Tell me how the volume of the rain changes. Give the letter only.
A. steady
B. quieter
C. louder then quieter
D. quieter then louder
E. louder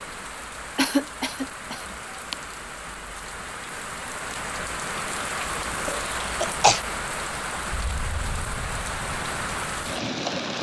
E.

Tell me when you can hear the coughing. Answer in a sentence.
You can hear the coughing from 0.8 to 2.4 s and from 5.8 to 6.8 s.